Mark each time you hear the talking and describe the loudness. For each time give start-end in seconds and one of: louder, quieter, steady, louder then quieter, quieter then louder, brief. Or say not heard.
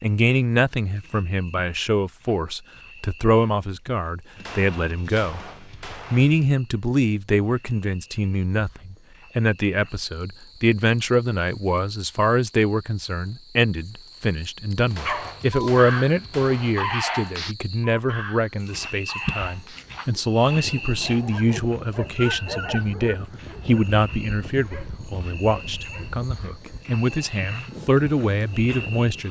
0.0-29.2 steady.